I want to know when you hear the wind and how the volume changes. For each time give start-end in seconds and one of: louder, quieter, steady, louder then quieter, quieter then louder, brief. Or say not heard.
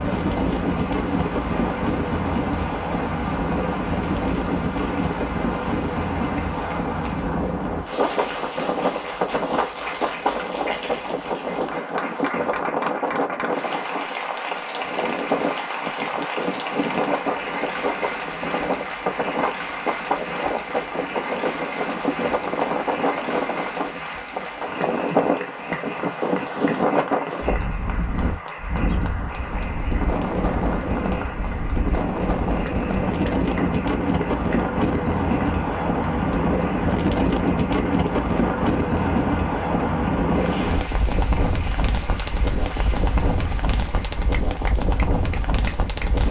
0.0-46.2 steady.